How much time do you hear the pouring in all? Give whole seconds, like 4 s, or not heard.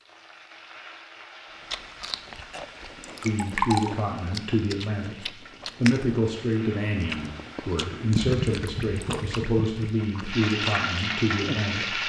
3 s.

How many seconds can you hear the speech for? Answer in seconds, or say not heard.
9 s.